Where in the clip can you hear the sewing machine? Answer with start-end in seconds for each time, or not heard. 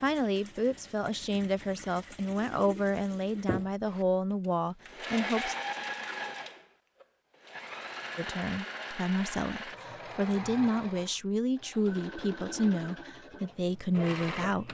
0.0-14.6.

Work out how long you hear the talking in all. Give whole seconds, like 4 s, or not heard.
12 s.